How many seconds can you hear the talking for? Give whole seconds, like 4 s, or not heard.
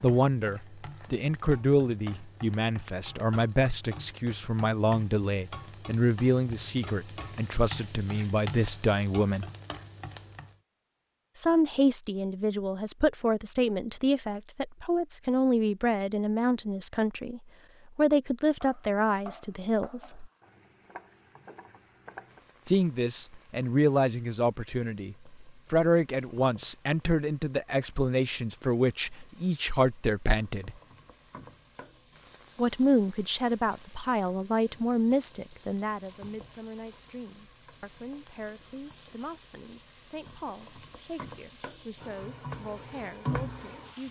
38 s.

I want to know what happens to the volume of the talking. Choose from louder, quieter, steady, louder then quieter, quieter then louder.
quieter.